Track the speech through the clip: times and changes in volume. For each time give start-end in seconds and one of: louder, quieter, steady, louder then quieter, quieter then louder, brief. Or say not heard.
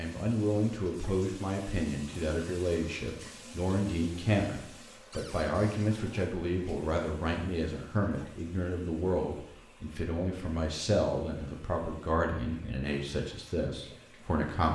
0.0-14.7 steady.